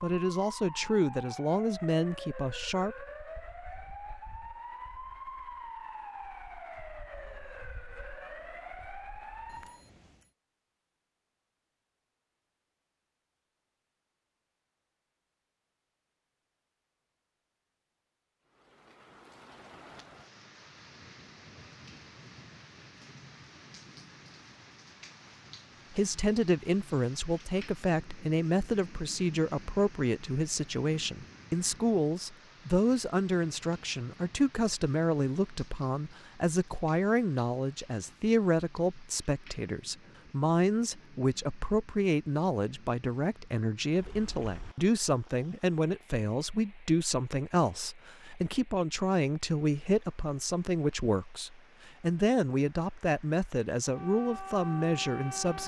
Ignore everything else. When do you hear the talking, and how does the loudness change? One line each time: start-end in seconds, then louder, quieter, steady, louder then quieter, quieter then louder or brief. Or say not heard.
0.0-3.0 brief
25.9-55.6 steady.